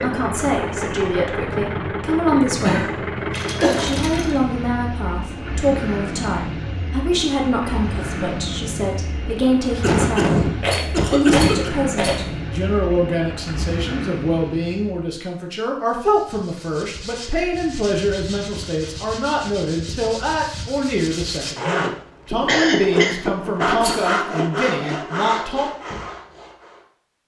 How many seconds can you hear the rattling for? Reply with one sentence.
The rattling can be heard for 3 seconds in total.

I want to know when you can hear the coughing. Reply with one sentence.
The coughing can be heard from 2.3 to 4.1 s, from 9.8 to 11.7 s and from 22.4 to 23.1 s.